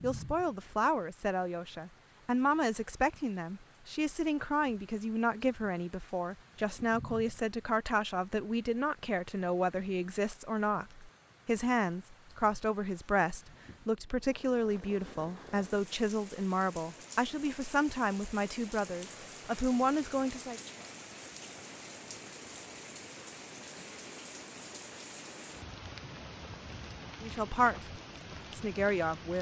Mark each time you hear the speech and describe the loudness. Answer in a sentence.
The speech can be heard from 0.0 to 20.6 s, at a steady volume; and briefly from 27.2 to 29.3 s.